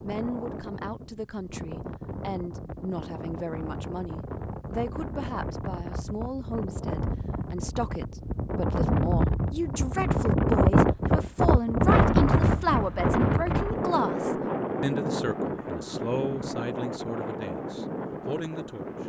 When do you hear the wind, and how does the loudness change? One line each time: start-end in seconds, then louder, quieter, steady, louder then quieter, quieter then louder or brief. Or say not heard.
0.0-19.0 louder then quieter.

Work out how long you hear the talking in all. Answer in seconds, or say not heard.
19 s.